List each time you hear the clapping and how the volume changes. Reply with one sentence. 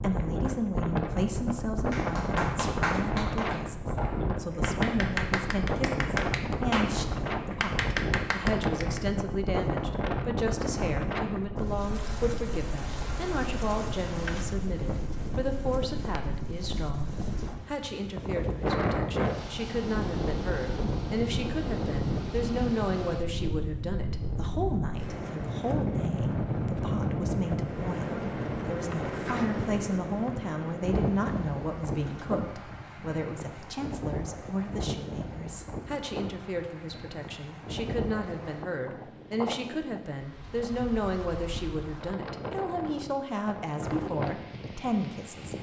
You can hear the clapping from 1.9 to 9.0 s, getting quieter then louder.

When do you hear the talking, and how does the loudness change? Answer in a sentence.
The talking can be heard from 0.0 to 45.5 s, at a steady volume.